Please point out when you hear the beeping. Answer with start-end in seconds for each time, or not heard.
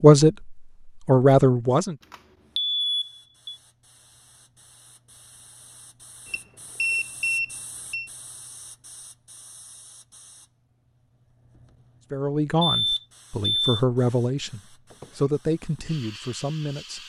2.1-3.5, 6.3-8.1, 12.6-13.8.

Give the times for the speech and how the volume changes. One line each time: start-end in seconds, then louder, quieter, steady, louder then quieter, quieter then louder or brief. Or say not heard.
0.0-1.9 brief
12.1-17.0 quieter.